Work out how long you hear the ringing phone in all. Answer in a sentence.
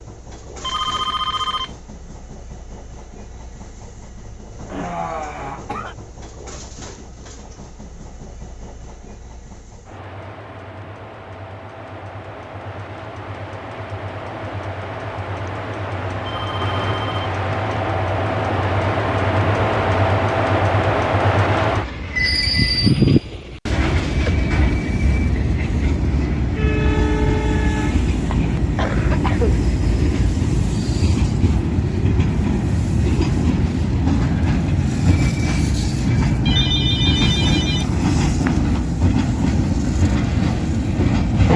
You can hear the ringing phone for 4 seconds altogether.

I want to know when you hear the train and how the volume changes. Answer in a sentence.
The train can be heard from 0.0 to 41.5 s, getting louder.